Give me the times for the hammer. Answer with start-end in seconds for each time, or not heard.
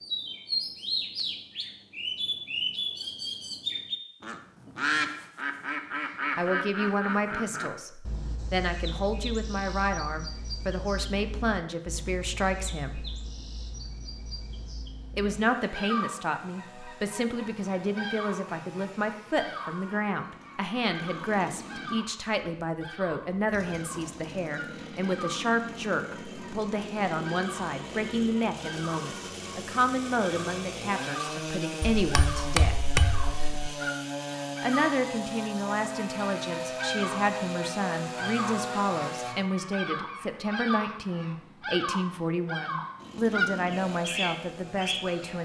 31.8-33.7.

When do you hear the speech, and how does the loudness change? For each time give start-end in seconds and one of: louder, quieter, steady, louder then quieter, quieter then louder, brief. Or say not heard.
6.3-13.1 steady
15.2-32.8 steady
34.6-45.4 steady.